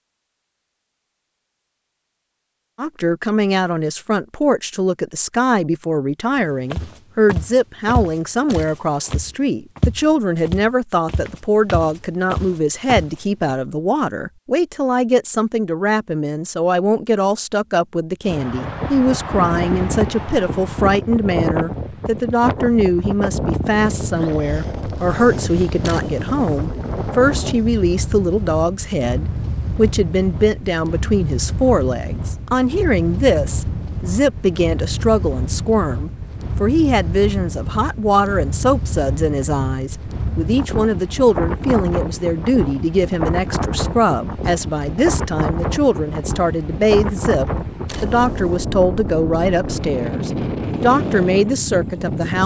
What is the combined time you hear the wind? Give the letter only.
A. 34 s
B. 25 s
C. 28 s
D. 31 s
A.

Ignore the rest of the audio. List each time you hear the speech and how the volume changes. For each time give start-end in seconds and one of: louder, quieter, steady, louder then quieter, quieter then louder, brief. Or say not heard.
2.8-52.4 steady.